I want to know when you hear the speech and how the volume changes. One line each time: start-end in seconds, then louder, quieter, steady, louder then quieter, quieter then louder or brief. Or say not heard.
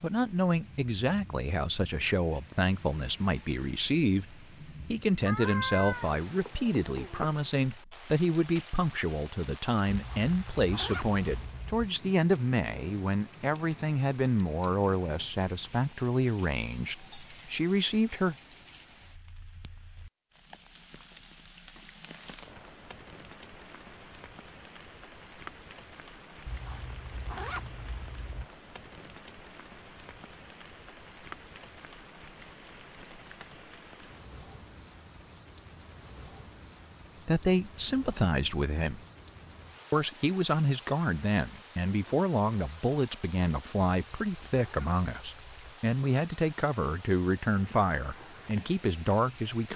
0.0-18.4 steady
37.2-39.0 brief
39.9-49.7 steady.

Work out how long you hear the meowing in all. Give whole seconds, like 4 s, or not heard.
2 s.